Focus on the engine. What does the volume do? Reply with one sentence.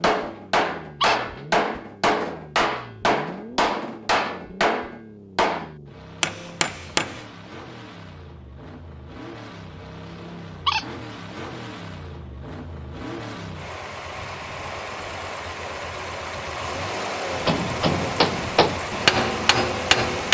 The volume of the engine goes up.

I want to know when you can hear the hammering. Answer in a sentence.
You can hear the hammering from 0.0 to 7.2 s and from 17.3 to 20.2 s.